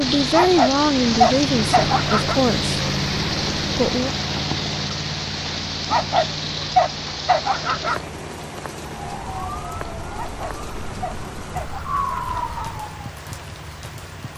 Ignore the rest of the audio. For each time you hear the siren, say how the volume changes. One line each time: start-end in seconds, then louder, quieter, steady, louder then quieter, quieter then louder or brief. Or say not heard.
8.8-13.2 quieter then louder.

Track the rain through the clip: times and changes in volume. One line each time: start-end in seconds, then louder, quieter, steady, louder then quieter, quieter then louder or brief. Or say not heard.
0.0-14.3 quieter.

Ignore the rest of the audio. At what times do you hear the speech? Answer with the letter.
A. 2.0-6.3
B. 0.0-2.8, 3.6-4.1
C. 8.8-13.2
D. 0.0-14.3
B.